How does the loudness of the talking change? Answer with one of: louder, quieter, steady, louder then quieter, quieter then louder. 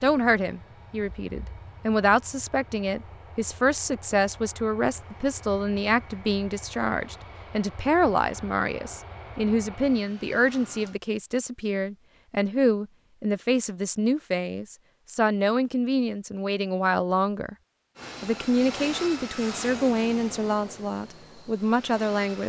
steady.